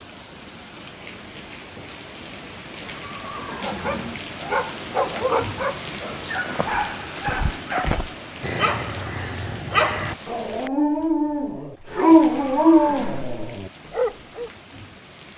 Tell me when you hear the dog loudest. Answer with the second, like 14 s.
12 s.